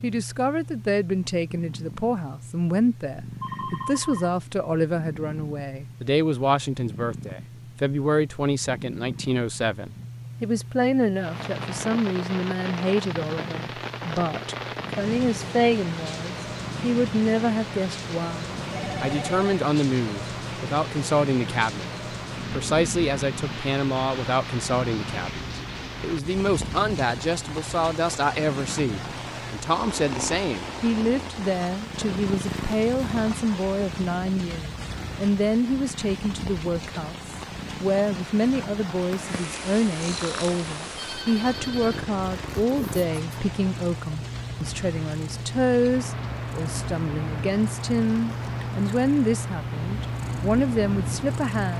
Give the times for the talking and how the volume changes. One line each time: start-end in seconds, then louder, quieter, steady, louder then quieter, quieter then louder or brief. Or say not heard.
0.0-21.9 steady
22.5-51.7 steady.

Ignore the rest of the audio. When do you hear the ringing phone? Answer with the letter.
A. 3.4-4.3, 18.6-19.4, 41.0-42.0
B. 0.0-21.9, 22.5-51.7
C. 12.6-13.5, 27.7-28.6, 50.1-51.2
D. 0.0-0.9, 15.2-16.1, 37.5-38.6
A.